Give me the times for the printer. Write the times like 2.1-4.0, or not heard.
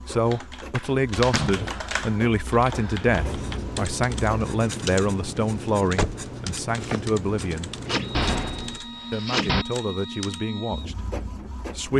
0.0-4.5, 7.8-11.9.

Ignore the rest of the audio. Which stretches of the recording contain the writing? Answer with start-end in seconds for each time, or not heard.
3.0-8.8.